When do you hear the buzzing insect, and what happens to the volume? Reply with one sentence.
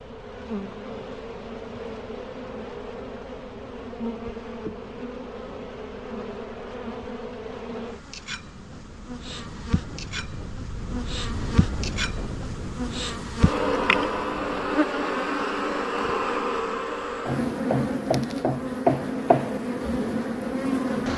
You can hear the buzzing insect from 0.0 to 21.1 s, getting louder.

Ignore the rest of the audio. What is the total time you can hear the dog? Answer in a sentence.
You can't hear the dog here.